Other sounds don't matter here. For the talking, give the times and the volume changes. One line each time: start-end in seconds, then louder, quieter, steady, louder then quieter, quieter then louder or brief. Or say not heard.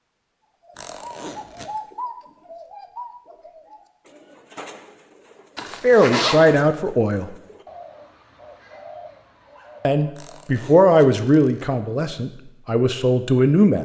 5.8-7.3 brief
9.8-13.8 quieter then louder.